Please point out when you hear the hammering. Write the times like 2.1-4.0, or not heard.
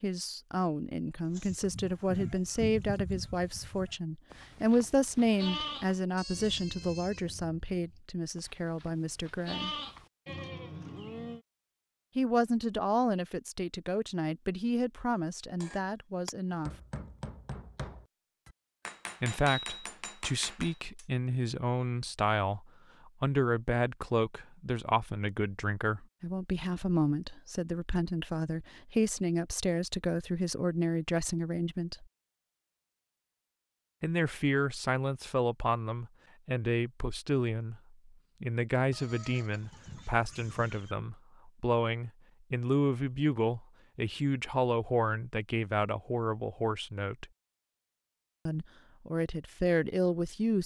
15.6-21.1.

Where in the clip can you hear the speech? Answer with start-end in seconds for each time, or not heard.
0.0-9.7, 12.2-16.7, 19.2-32.0, 34.0-47.2, 48.5-50.6.